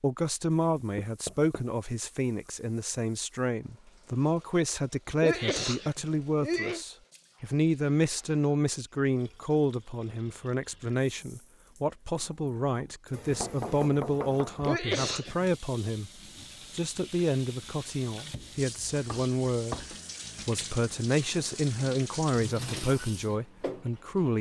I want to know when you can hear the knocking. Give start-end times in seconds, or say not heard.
0.9-1.6, 13.2-14.8, 19.1-19.9.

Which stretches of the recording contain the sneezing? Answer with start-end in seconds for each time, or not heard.
5.2-6.8, 14.7-15.4.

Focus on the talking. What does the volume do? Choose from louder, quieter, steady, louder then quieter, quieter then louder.
steady.